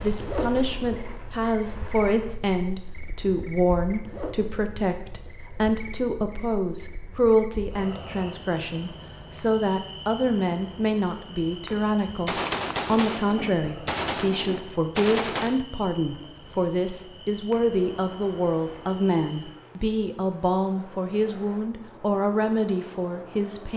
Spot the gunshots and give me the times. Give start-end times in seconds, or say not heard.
12.1-15.7.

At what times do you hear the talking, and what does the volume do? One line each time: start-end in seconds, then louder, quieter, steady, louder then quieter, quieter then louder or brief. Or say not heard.
0.0-23.7 steady.